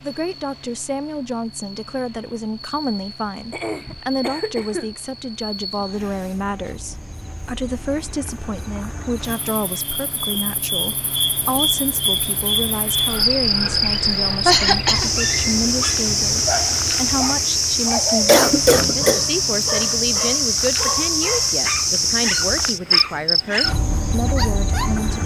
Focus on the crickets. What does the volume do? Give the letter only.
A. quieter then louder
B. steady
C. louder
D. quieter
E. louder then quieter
C.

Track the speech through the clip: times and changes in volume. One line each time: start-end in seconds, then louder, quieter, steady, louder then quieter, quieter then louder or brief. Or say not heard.
0.0-25.2 steady.